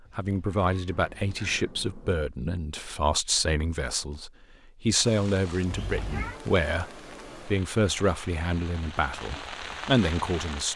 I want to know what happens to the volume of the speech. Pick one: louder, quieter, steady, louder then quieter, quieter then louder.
steady.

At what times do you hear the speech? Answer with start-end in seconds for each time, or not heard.
0.1-10.7.